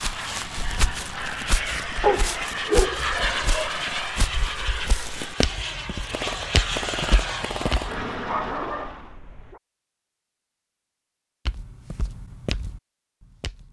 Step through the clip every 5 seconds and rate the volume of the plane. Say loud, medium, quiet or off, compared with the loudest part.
loud, loud, off.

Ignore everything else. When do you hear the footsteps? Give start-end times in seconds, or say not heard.
0.0-8.0, 11.4-13.6.